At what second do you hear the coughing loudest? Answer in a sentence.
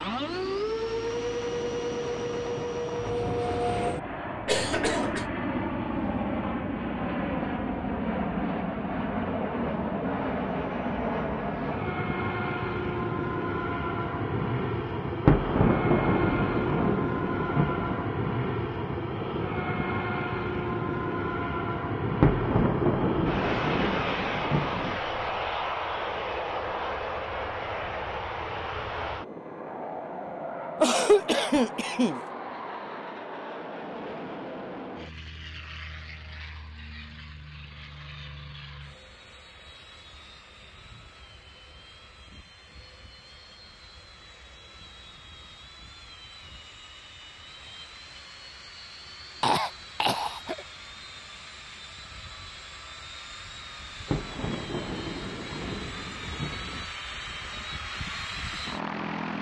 The loudest moment of the coughing is at 31 seconds.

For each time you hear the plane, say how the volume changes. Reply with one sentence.
You can hear the plane from 0.0 to 59.3 s, getting quieter then louder.